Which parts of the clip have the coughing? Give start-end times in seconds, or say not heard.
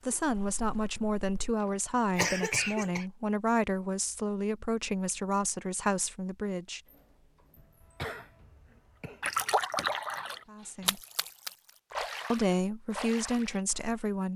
2.1-3.0, 7.5-9.2.